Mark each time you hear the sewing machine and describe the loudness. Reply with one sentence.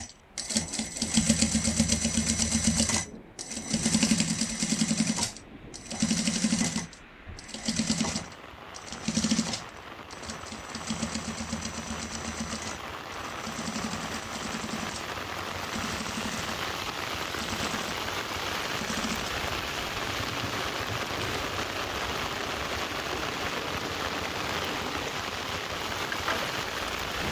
You can hear the sewing machine from 0.0 to 27.2 s, getting quieter.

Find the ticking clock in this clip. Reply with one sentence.
You can't hear the ticking clock here.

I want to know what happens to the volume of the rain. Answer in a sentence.
The volume of the rain goes up.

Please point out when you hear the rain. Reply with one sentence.
You can hear the rain from 0.0 to 27.2 s.